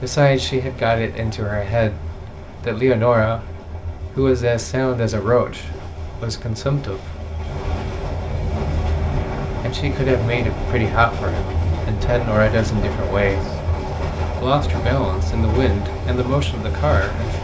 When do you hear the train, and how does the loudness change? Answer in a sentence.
The train can be heard from 0.0 to 17.3 s, getting louder.